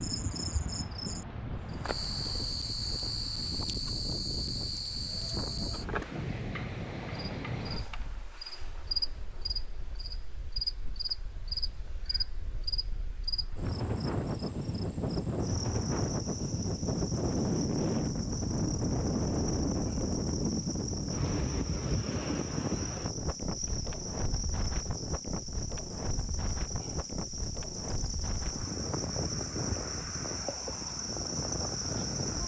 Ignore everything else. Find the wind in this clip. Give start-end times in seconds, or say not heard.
0.0-32.4.